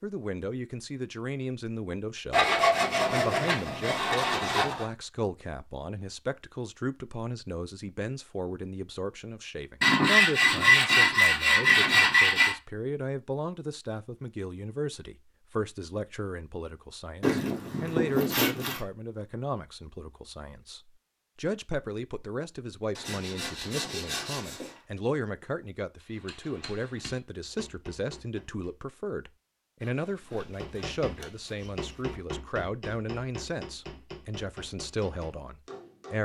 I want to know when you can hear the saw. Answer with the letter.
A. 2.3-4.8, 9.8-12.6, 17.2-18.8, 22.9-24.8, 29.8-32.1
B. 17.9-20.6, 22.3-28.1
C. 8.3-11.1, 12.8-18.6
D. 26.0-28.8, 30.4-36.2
A.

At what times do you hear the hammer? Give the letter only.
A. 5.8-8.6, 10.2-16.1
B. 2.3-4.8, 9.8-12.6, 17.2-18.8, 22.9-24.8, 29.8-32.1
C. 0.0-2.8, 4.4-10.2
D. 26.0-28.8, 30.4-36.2
D.